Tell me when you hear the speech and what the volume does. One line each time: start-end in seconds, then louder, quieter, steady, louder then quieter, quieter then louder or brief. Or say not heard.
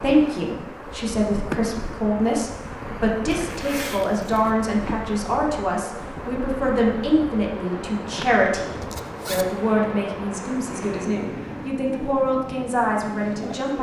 0.0-13.7 steady.